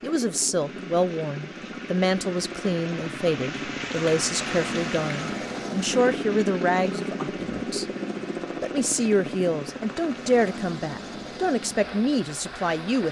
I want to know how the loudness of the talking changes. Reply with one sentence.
The volume of the talking stays about the same.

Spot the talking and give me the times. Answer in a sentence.
You can hear the talking from 0.0 to 7.8 s and from 8.6 to 13.0 s.